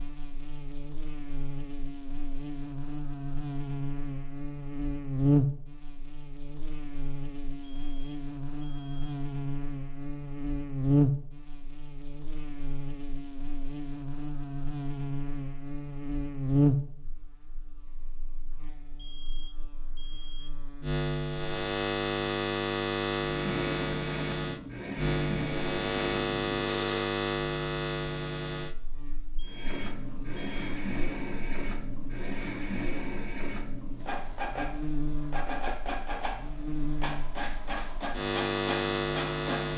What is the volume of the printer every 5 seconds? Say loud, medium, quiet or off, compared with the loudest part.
off, off, off, off, loud, loud, loud, loud.